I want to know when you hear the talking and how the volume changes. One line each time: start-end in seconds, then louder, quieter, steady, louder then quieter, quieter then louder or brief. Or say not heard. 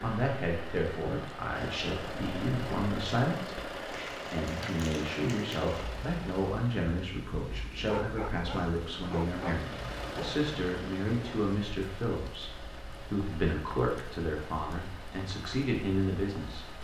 0.0-16.6 steady.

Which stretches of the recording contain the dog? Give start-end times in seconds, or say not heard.
7.8-10.3.